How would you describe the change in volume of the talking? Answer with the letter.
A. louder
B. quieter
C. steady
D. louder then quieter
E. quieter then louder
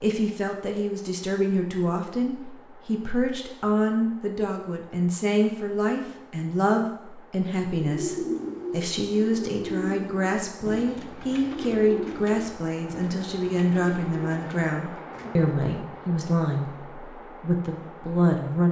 C.